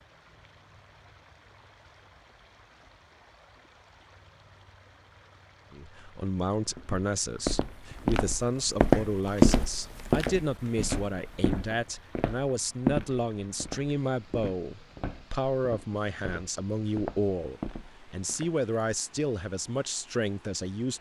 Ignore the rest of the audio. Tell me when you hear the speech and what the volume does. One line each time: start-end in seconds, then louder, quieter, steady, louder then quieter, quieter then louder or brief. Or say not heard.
5.7-20.9 steady.